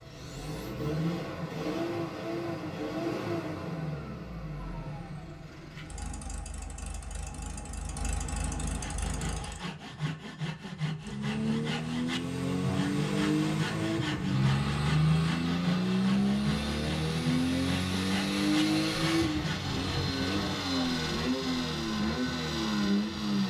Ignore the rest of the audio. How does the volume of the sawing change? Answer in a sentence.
The loudness of the sawing stays about the same.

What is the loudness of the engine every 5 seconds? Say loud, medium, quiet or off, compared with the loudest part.
medium, quiet, loud, loud, loud.